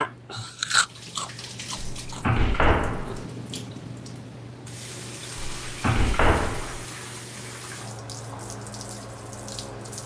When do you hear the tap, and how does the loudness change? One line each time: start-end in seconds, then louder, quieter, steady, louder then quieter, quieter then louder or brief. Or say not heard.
0.0-10.0 steady.